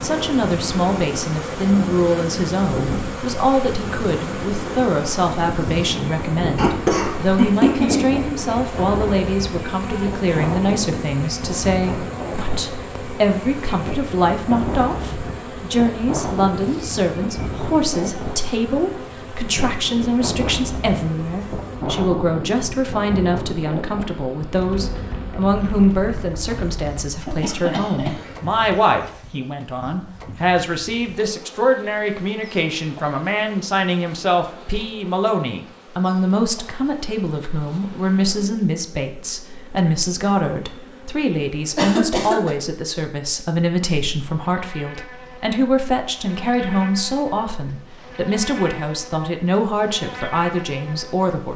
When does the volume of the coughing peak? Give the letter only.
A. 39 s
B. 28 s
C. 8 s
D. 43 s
C.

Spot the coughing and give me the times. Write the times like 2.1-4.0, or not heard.
6.5-8.1, 27.2-28.6, 41.8-42.5.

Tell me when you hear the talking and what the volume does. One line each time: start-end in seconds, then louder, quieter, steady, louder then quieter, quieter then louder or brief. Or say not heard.
0.0-51.5 steady.